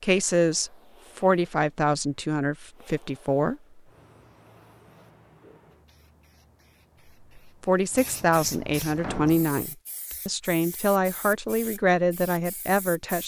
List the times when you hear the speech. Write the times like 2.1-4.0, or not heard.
0.0-3.5, 7.6-13.2.